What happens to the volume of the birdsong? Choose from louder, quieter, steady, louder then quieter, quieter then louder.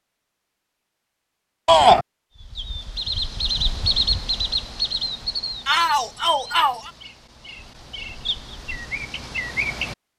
quieter then louder.